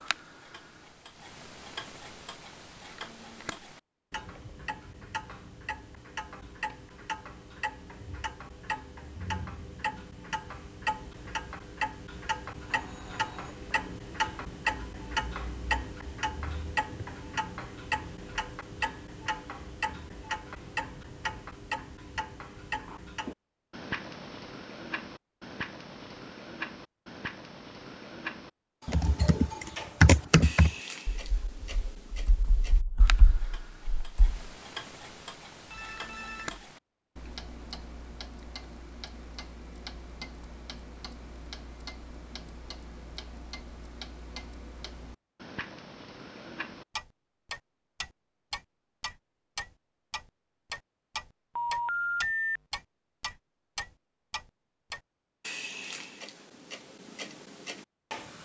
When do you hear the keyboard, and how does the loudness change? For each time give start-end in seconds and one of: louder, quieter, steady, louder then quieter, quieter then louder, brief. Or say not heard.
28.9-34.4 quieter then louder.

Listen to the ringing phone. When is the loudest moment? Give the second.
52 s.